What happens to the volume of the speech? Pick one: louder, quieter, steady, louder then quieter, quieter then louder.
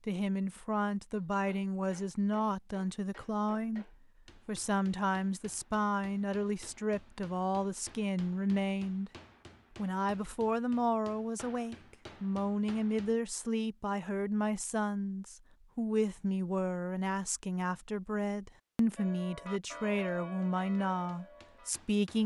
steady.